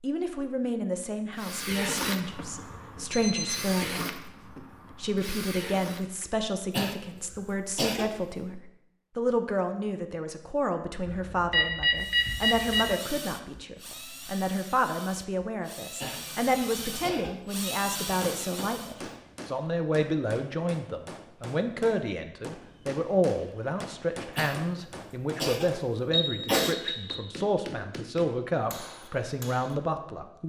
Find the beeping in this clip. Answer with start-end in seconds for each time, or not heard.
3.1-3.8, 11.1-12.9, 26.1-27.1.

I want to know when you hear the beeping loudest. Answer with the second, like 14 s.
12 s.